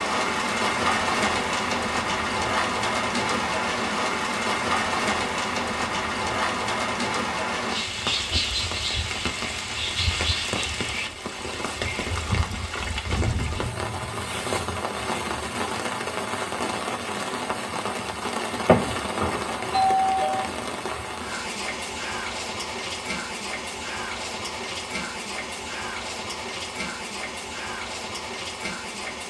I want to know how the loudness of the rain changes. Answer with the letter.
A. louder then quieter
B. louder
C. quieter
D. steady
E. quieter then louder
C.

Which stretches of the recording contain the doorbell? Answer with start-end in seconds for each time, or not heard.
18.6-20.4.